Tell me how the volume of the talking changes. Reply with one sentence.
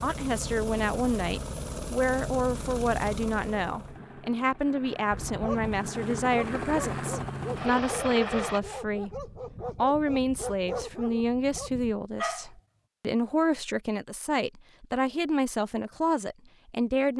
The volume of the talking stays about the same.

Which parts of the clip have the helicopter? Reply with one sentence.
You can hear the helicopter from 0.0 to 8.6 s.